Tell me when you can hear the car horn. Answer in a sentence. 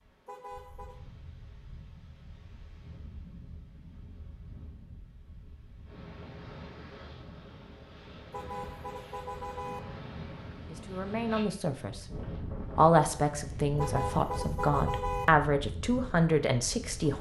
You can hear the car horn from 0.2 to 0.9 s, from 8.3 to 9.8 s and from 13.8 to 15.2 s.